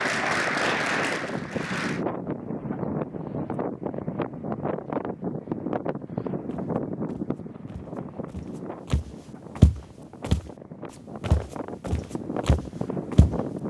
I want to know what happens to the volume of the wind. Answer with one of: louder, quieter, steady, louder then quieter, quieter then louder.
quieter then louder.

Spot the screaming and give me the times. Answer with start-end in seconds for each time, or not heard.
not heard.